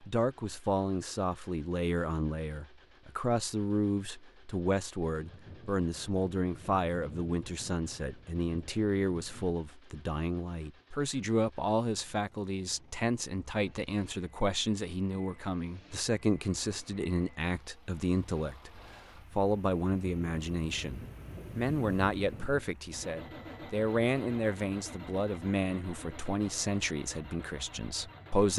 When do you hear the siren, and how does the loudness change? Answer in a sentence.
The siren can't be heard in this clip.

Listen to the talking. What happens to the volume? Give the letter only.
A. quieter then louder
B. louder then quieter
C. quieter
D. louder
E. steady
E.